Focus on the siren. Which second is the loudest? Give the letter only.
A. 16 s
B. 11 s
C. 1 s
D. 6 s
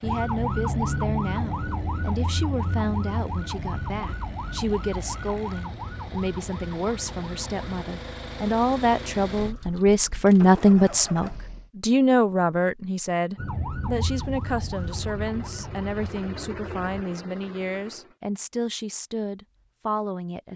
C.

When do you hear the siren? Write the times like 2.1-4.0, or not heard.
0.0-7.8, 13.3-17.1.